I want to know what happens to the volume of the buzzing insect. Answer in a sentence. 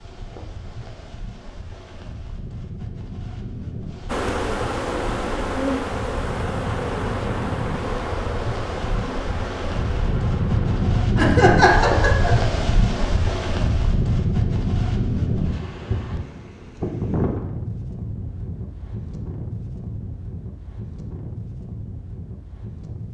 The volume of the buzzing insect goes down.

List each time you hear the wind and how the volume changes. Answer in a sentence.
The wind can be heard from 0.0 to 23.0 s, getting louder then quieter.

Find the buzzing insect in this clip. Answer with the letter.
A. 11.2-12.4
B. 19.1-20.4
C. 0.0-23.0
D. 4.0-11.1
D.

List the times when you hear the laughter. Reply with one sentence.
The laughter can be heard from 11.2 to 12.4 s.